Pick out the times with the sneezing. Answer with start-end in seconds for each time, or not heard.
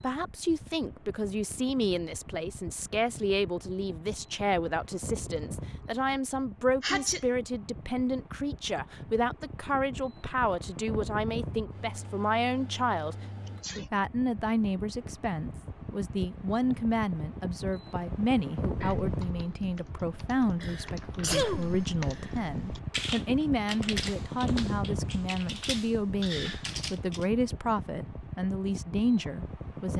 6.8-7.2, 13.4-13.9, 20.6-22.3.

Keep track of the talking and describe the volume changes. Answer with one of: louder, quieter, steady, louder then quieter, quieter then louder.
steady.